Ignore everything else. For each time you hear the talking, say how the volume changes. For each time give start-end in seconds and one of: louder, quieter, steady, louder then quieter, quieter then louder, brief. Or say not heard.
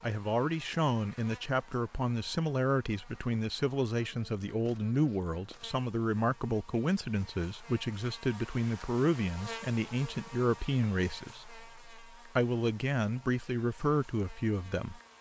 0.0-15.0 steady.